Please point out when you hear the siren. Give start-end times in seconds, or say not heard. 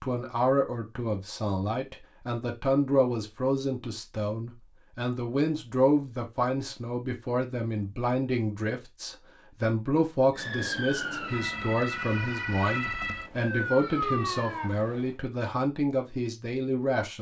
10.3-15.2.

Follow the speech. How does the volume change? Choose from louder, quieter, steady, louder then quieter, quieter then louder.
steady.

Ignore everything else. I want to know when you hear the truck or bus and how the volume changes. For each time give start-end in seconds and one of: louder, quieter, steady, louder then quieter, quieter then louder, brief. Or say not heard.
not heard.